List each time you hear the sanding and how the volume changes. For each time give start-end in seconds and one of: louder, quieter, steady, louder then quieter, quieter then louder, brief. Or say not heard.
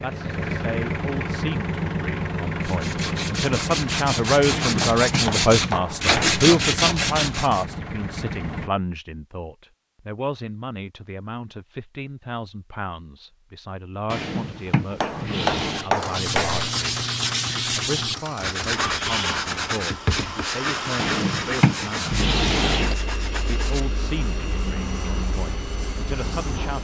2.6-7.7 louder
15.6-26.7 quieter.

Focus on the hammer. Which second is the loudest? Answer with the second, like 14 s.
16 s.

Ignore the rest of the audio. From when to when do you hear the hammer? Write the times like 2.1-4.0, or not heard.
4.8-6.4, 15.0-16.8.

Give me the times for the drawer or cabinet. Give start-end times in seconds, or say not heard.
4.5-5.2, 14.1-15.9, 20.9-22.9.